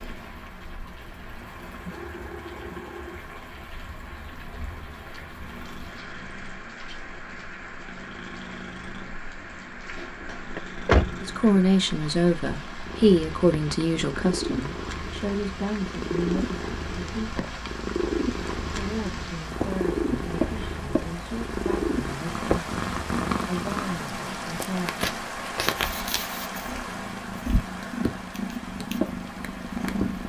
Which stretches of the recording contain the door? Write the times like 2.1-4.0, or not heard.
10.6-11.6.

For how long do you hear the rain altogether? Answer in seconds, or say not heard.
30 s.